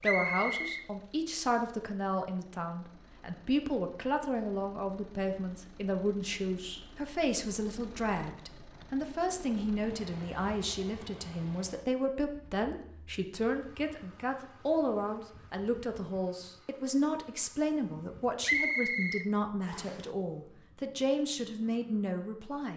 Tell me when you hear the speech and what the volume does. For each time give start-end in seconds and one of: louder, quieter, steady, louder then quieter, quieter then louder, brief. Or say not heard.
0.0-22.7 steady.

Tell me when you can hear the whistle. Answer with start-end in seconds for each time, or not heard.
0.0-0.8, 18.4-20.1.